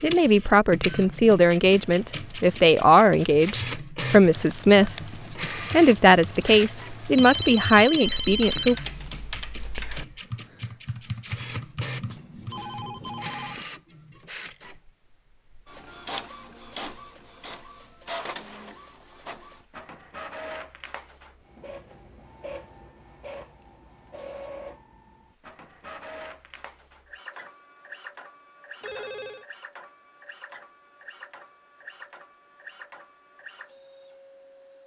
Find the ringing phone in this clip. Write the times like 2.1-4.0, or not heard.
7.2-8.8, 12.0-13.7, 28.8-29.4.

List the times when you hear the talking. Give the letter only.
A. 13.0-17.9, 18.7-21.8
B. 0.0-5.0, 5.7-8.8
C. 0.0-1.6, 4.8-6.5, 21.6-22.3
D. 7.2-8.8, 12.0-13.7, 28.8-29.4
B.